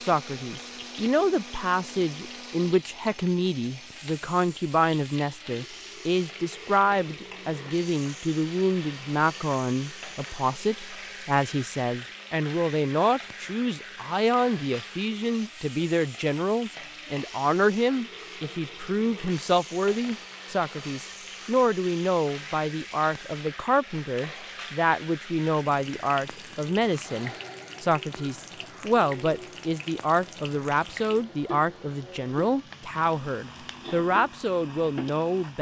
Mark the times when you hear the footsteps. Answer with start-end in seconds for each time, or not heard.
not heard.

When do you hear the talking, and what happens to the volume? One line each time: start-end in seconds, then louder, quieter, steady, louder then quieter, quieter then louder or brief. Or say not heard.
0.0-35.5 steady.